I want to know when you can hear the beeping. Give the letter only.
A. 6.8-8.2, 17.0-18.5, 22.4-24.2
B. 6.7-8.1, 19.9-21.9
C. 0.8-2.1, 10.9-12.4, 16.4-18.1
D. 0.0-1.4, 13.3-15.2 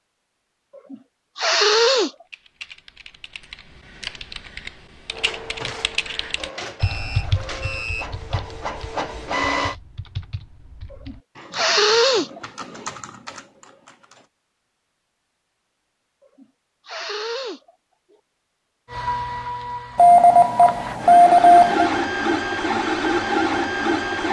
B.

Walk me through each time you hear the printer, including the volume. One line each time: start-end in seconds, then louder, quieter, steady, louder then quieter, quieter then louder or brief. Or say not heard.
5.1-9.8 louder
18.9-24.2 louder.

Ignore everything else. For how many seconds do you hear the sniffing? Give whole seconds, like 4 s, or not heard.
5 s.